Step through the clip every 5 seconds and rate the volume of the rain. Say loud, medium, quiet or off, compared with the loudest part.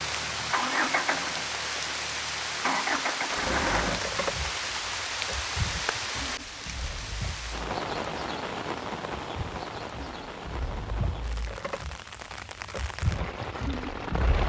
loud, loud, medium.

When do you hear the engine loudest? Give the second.
3 s.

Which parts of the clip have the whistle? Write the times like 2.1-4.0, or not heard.
not heard.